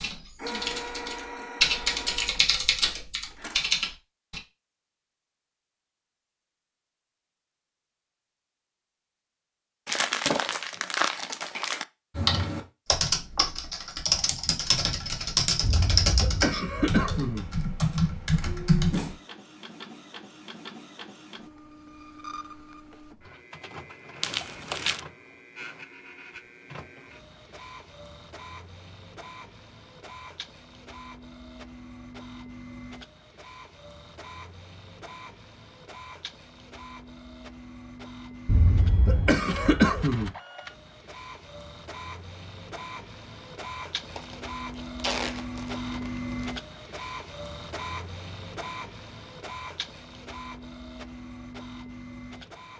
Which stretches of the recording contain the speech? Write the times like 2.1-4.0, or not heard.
not heard.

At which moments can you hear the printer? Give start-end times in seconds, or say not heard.
0.0-3.6, 18.2-52.7.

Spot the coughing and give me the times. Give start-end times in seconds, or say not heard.
15.6-17.4, 38.5-40.3.